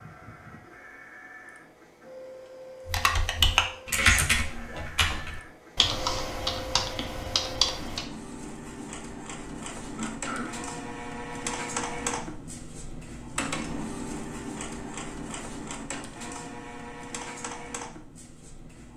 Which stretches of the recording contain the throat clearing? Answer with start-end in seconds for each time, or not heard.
9.8-10.6.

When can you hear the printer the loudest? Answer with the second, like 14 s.
12 s.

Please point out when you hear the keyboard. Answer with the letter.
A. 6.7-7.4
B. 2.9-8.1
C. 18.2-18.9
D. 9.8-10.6
B.